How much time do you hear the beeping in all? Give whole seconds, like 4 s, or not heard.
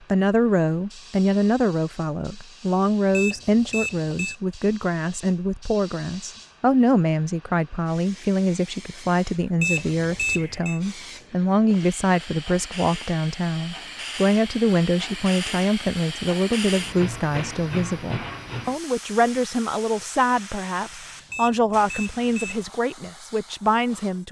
4 s.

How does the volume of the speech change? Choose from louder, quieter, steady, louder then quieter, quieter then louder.
steady.